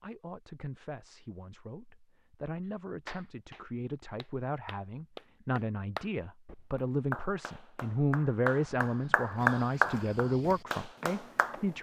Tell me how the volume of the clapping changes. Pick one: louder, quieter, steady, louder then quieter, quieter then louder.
louder.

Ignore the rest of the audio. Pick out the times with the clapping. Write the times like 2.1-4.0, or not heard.
2.6-11.6.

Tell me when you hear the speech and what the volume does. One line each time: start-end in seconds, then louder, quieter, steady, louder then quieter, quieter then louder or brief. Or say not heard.
0.0-11.7 louder.